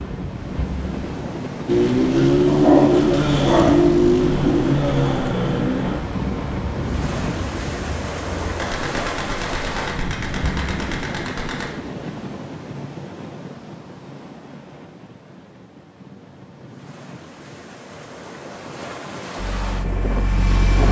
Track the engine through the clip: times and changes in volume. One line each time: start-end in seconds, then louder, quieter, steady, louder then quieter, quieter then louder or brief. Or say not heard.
1.6-8.6 quieter
19.4-20.8 brief.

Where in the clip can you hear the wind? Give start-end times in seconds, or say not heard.
0.0-20.8.